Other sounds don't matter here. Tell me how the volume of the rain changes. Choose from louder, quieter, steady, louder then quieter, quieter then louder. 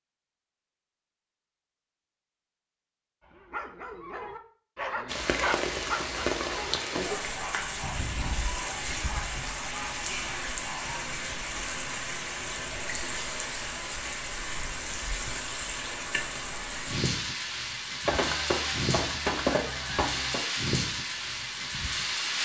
steady.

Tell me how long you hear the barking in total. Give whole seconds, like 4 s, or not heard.
8 s.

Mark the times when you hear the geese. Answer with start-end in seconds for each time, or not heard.
7.8-9.6, 18.1-20.4.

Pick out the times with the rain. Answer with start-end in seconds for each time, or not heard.
5.0-22.4.